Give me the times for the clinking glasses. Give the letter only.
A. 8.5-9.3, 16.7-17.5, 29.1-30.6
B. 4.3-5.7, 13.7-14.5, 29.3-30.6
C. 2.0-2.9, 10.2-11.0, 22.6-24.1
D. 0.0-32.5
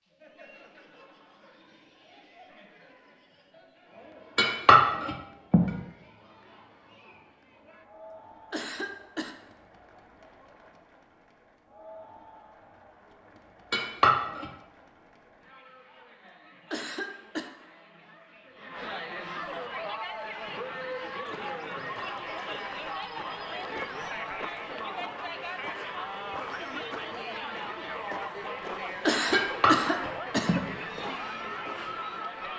B.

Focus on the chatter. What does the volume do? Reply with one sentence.
The volume of the chatter goes up.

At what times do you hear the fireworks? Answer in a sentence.
The fireworks can't be heard in this clip.